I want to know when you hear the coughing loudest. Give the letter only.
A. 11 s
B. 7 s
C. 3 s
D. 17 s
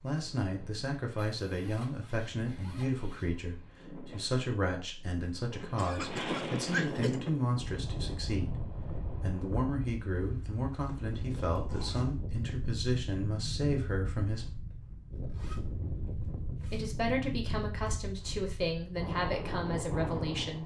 B.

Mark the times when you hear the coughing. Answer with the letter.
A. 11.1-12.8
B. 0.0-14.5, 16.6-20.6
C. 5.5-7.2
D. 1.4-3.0
C.